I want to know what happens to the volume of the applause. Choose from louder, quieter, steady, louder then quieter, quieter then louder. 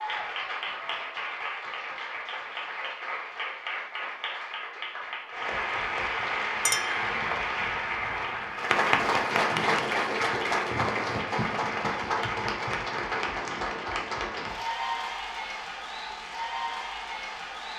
louder then quieter.